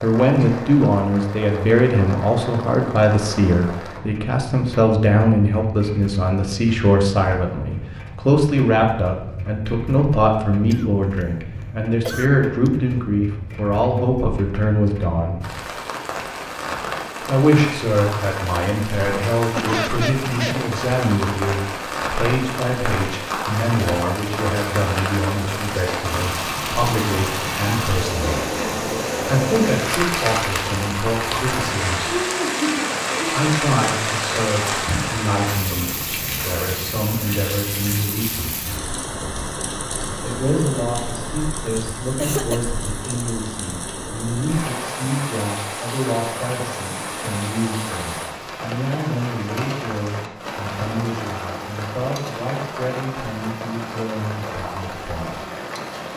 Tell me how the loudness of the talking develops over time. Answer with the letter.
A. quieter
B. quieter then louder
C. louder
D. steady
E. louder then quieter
A.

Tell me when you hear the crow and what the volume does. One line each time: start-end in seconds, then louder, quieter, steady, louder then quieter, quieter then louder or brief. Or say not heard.
not heard.